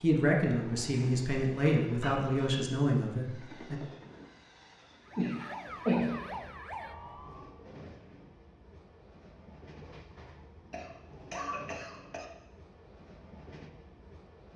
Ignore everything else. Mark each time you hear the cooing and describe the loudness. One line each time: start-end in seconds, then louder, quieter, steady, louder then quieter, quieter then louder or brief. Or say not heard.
not heard.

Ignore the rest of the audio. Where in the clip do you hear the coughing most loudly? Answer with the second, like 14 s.
6 s.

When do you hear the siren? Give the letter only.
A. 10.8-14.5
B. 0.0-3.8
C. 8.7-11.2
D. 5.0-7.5
D.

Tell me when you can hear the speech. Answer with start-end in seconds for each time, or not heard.
0.0-3.8.